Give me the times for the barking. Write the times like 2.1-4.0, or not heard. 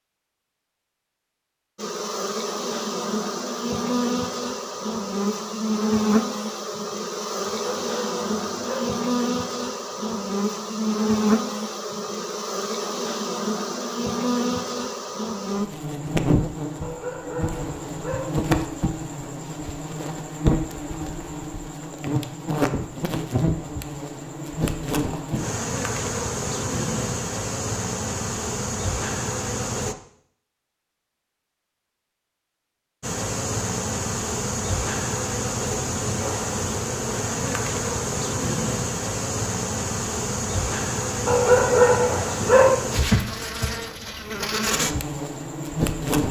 7.4-8.9, 16.8-18.2, 41.2-42.7.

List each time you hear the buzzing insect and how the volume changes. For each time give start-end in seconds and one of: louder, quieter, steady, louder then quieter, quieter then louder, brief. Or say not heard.
1.8-29.9 steady
33.0-46.2 steady.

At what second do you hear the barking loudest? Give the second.
42 s.